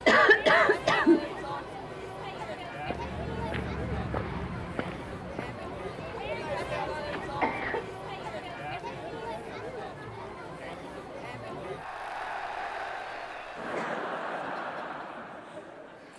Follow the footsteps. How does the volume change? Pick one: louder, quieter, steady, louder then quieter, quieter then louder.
quieter.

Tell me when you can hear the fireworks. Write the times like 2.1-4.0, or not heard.
not heard.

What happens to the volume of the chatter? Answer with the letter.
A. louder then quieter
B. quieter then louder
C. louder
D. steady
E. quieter
D.